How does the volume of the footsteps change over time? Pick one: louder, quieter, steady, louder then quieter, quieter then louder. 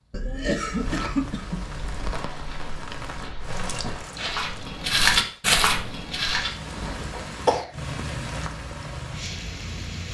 louder then quieter.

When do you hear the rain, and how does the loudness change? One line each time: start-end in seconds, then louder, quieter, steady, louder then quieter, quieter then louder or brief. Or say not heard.
0.0-10.0 quieter then louder.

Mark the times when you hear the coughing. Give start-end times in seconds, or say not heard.
0.1-2.1, 7.2-7.7.